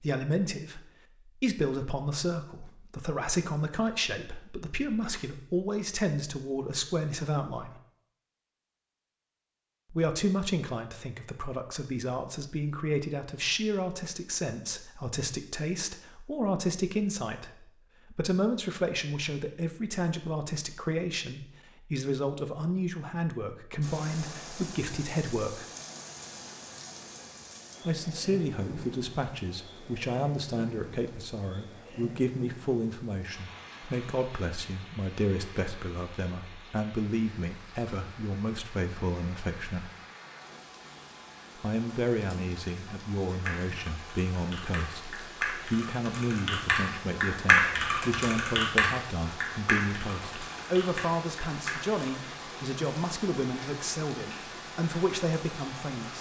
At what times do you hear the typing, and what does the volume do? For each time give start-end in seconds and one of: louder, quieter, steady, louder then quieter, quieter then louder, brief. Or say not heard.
43.5-52.0 louder then quieter.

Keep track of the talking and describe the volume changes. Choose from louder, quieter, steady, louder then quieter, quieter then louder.
steady.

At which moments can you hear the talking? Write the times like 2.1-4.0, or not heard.
0.0-7.8, 9.9-25.6, 27.9-39.9, 41.5-56.1.